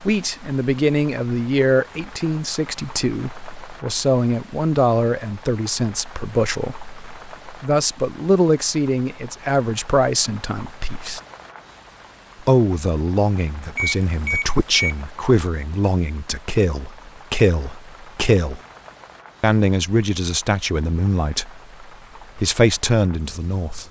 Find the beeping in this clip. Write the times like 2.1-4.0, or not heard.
13.8-14.9.